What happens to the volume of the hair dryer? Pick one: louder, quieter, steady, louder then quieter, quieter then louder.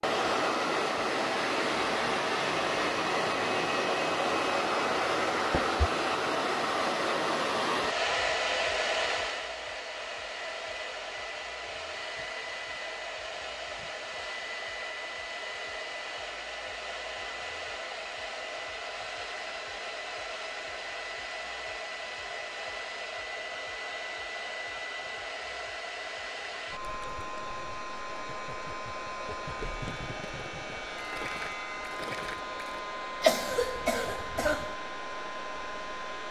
quieter.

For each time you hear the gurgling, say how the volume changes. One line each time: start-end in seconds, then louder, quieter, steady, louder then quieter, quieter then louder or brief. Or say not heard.
26.8-32.8 louder.